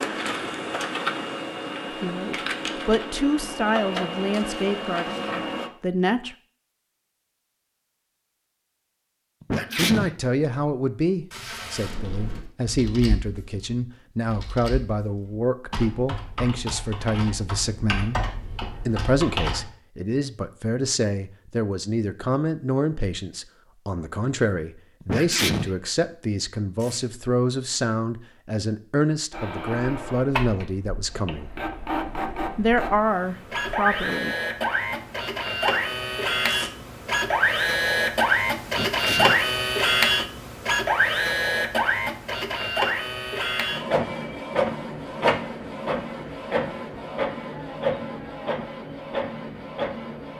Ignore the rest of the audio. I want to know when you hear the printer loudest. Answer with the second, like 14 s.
40 s.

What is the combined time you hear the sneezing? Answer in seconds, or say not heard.
2 s.